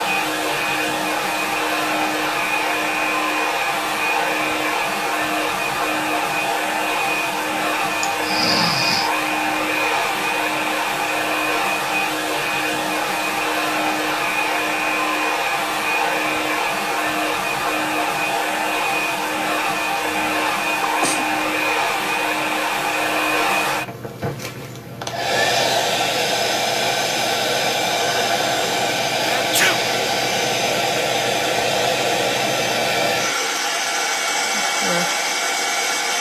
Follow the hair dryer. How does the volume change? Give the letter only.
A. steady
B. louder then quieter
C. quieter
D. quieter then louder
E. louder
A.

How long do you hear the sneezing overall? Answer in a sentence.
You can hear the sneezing for 2 seconds altogether.